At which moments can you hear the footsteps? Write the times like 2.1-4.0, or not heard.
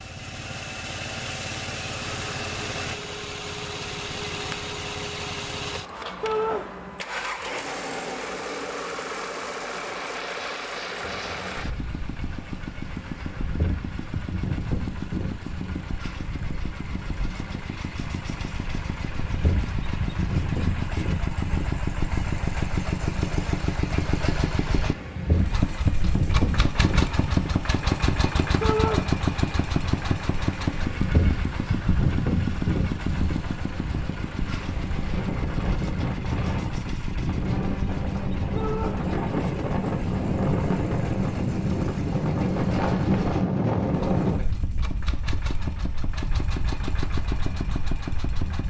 not heard.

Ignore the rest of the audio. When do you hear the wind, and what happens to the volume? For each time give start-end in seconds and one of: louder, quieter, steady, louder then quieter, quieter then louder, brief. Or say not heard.
10.9-48.6 louder.